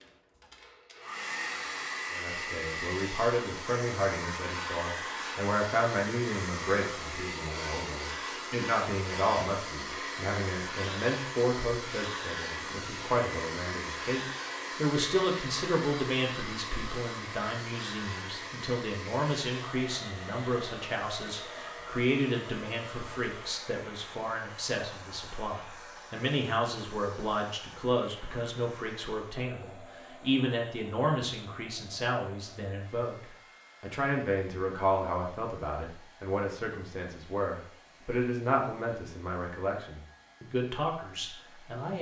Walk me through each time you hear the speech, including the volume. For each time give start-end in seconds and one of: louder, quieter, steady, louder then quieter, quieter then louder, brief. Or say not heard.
2.1-41.9 steady.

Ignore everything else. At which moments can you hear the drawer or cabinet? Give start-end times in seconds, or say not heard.
not heard.